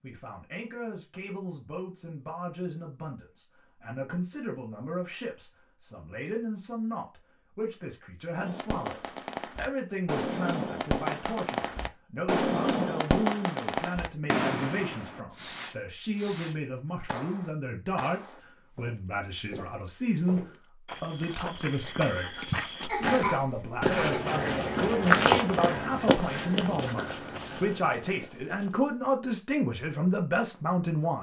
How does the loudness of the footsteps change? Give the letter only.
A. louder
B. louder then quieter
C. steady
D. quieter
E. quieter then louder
B.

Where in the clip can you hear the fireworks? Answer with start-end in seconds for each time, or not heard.
8.3-18.4.